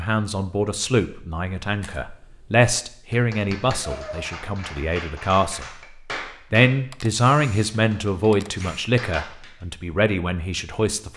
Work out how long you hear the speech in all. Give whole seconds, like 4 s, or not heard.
10 s.